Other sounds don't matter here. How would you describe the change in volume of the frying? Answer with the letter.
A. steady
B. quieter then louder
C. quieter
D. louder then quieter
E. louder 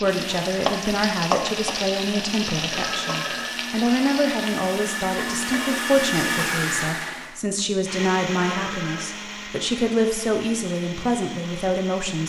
C.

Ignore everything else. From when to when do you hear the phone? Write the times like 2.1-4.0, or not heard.
2.7-3.5, 8.3-9.1.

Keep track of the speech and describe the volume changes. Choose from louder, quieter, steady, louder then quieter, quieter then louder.
steady.